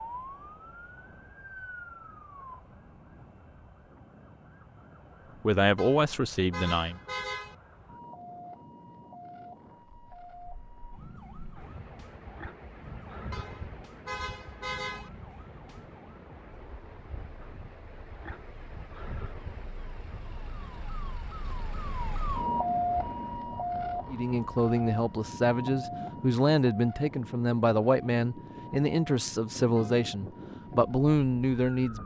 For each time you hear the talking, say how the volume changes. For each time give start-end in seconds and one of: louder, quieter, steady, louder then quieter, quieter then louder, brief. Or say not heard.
5.4-7.0 brief
24.1-32.0 steady.